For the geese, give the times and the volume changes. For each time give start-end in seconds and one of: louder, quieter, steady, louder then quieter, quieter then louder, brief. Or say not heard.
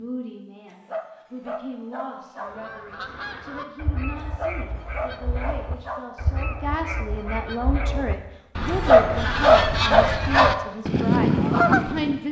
2.4-12.2 louder.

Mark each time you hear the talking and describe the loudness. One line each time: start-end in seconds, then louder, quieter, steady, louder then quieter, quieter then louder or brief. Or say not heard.
0.0-12.2 louder.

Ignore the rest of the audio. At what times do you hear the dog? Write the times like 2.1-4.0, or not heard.
0.7-2.5, 4.2-6.0, 8.7-10.6.